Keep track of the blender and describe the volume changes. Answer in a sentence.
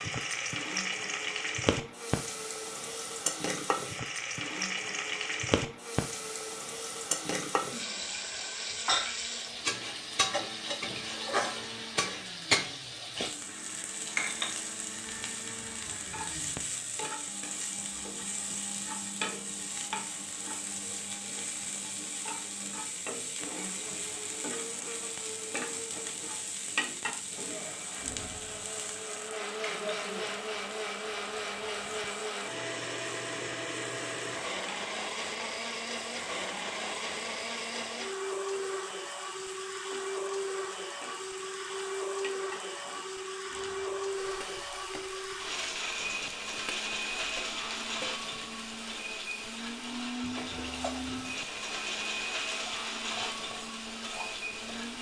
The loudness of the blender goes up.